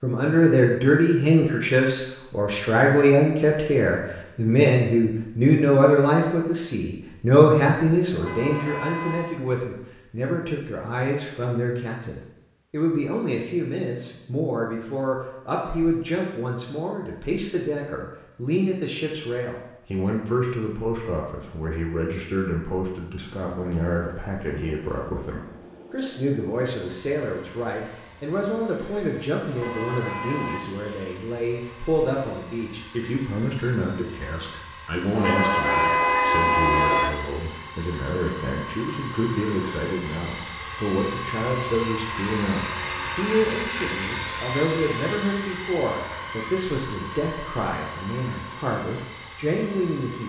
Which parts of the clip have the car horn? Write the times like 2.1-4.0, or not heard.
8.2-9.4, 29.5-30.7, 35.1-37.1.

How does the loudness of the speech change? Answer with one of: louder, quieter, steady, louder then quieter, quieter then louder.
quieter.